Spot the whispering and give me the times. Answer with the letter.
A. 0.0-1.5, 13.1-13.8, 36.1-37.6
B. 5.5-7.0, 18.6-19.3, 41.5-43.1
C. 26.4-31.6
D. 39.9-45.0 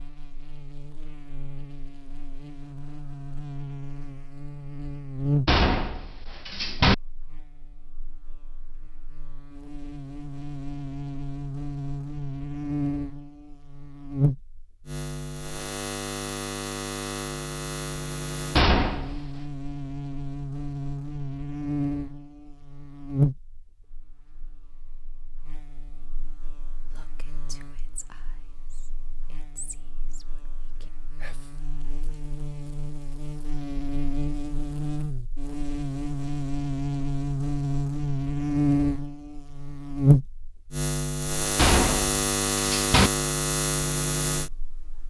C.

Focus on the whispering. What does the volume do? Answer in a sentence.
The loudness of the whispering goes down, then up.